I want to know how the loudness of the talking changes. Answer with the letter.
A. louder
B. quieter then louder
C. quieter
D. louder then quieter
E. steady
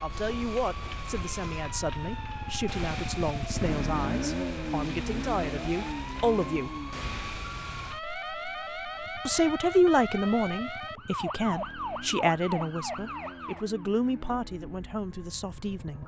D.